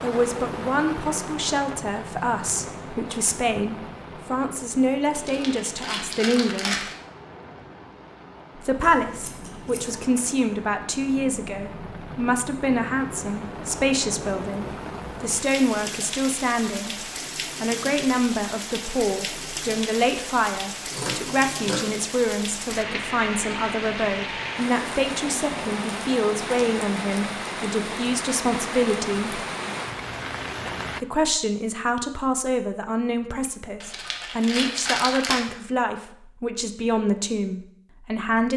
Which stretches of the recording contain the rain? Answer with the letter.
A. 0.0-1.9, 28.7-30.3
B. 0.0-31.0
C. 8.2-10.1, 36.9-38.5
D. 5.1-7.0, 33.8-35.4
B.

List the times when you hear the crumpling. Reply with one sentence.
The crumpling can be heard from 5.1 to 7.0 s and from 33.8 to 35.4 s.